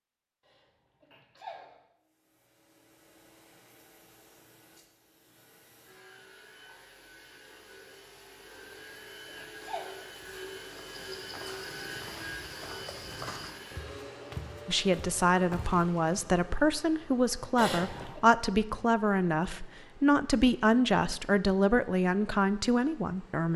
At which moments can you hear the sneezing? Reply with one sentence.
The sneezing can be heard from 0.5 to 1.8 s, from 8.7 to 10.1 s and from 17.6 to 18.2 s.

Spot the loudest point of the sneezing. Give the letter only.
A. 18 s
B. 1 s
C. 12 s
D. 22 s
A.